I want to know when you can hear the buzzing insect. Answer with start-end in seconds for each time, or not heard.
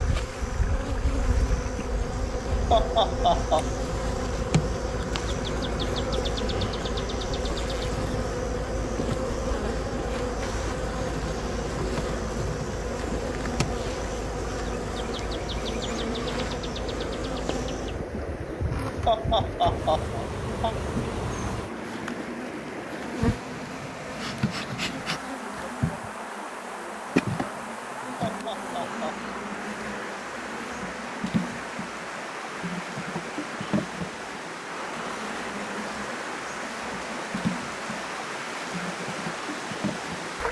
0.0-40.2.